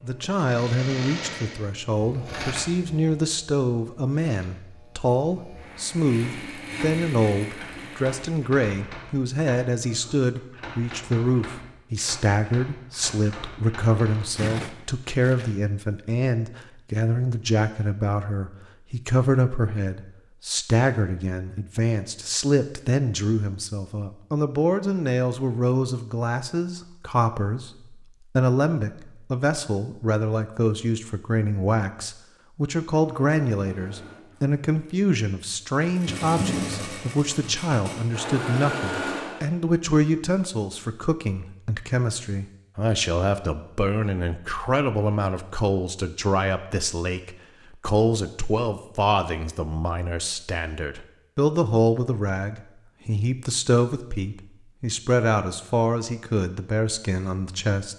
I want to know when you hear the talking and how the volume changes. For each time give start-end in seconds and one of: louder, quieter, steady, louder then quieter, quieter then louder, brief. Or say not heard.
0.0-57.9 steady.